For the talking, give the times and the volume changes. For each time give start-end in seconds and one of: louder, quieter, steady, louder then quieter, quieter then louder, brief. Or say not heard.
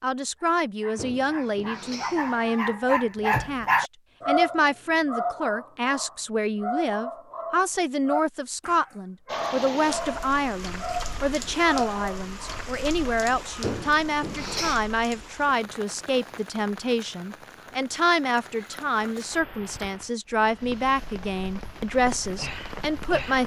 0.0-23.4 steady.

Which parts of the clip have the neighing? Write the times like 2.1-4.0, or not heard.
0.9-2.8, 13.6-14.8.